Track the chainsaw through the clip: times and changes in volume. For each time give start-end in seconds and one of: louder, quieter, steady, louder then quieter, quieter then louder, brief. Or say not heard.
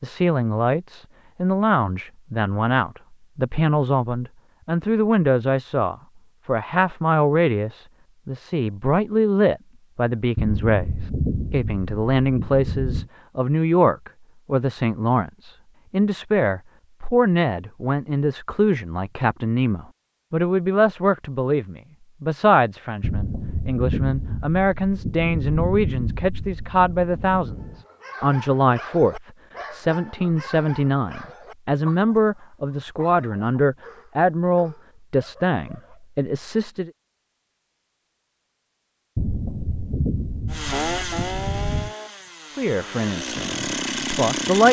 40.5-44.6 quieter then louder.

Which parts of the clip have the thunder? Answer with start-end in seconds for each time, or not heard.
10.3-13.1, 23.0-27.9, 39.1-42.0.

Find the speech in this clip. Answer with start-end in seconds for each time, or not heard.
0.0-10.9, 11.5-27.6, 28.2-36.9, 42.5-44.6.